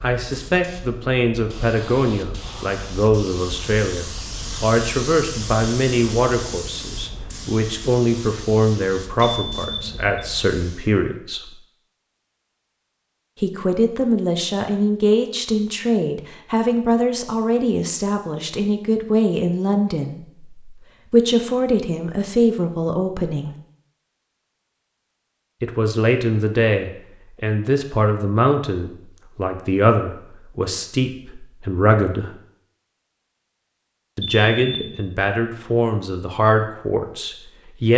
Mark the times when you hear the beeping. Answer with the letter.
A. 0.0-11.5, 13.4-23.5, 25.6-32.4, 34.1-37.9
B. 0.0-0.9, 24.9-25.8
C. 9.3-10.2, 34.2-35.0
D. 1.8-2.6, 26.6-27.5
C.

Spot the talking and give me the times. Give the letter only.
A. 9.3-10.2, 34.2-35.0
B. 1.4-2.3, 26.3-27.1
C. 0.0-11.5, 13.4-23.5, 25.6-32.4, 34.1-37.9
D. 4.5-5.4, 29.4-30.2
C.